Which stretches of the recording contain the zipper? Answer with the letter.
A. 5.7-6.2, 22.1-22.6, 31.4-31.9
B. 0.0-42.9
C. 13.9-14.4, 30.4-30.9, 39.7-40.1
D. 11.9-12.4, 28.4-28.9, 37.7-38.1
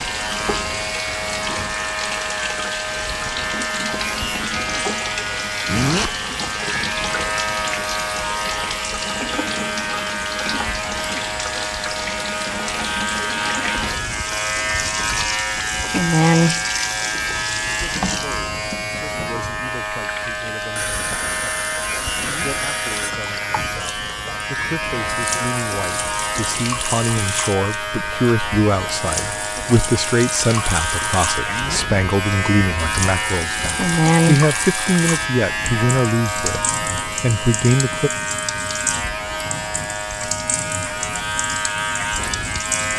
A.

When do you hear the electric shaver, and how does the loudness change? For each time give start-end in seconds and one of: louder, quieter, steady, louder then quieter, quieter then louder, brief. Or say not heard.
0.0-42.9 steady.